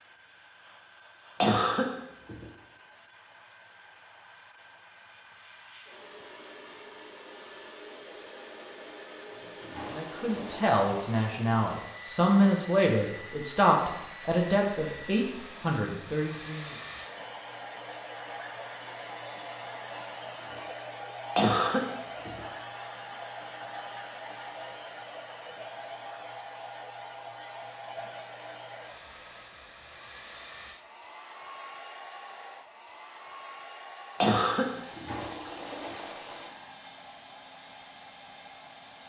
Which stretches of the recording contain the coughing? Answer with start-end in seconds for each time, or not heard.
1.4-2.5, 21.4-22.4, 34.2-35.2.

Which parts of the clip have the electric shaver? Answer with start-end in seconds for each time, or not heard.
not heard.